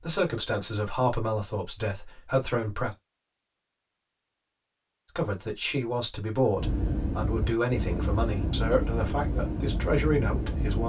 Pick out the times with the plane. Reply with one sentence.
The plane can be heard from 6.5 to 10.8 s.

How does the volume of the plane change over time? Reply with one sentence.
The volume of the plane stays about the same.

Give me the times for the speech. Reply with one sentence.
You can hear the speech from 0.0 to 3.0 s and from 5.2 to 10.8 s.